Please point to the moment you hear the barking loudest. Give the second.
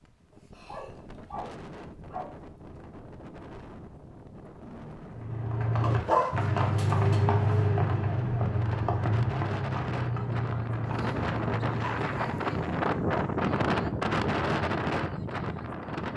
6 s.